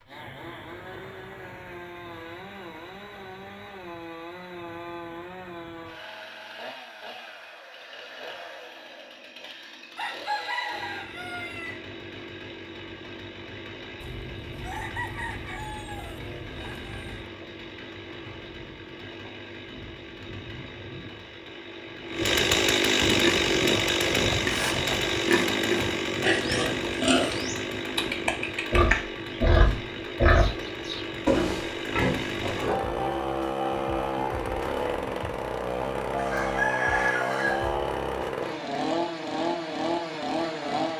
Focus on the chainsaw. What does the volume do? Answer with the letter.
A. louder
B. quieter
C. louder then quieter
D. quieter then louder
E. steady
A.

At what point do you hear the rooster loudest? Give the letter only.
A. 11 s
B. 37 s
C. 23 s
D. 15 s
B.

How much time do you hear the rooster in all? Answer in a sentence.
You can hear the rooster for 7 seconds altogether.